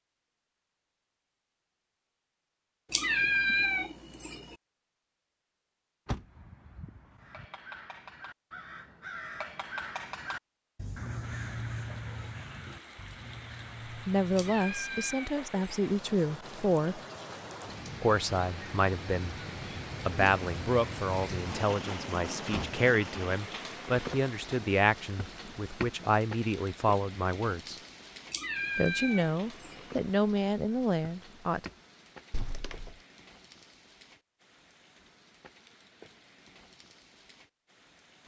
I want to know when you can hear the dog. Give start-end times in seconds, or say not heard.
not heard.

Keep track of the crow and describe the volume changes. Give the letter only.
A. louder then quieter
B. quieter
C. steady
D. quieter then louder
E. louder
A.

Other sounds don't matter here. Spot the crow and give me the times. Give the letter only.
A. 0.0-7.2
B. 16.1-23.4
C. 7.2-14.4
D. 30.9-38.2
C.